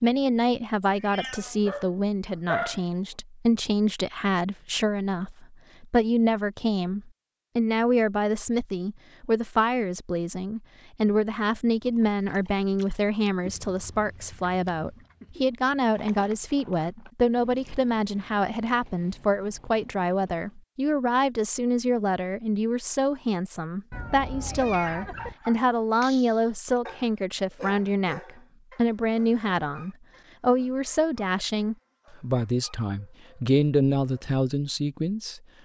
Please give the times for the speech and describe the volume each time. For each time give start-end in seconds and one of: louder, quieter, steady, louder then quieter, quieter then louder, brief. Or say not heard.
0.0-35.4 steady.